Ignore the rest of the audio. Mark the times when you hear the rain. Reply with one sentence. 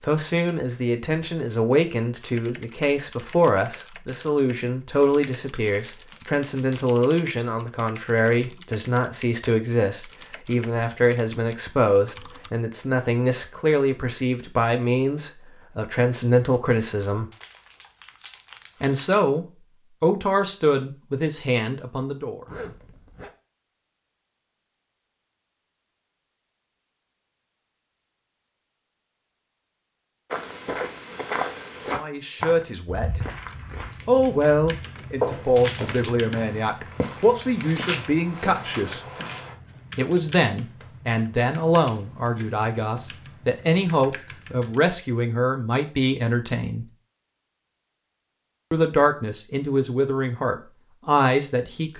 The rain can't be heard in this clip.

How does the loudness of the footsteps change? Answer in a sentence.
The volume of the footsteps goes down.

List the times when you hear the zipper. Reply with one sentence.
The zipper can be heard from 22.4 to 23.3 s.